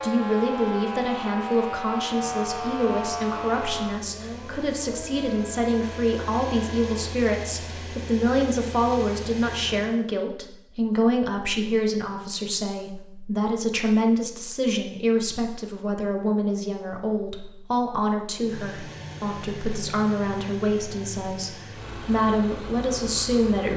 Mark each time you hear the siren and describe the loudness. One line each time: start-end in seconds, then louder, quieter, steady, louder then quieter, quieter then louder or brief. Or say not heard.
0.0-7.0 quieter.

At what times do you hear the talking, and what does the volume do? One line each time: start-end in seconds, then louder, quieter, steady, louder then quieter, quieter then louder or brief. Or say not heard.
0.0-23.7 steady.